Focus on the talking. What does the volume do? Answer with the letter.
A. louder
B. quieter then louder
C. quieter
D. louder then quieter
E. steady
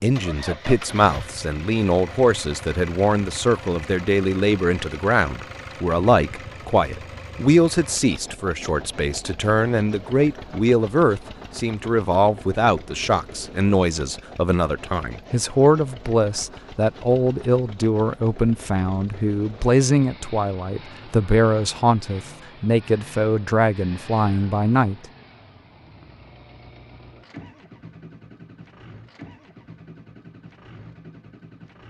E.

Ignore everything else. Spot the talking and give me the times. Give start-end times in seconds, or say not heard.
0.0-24.9.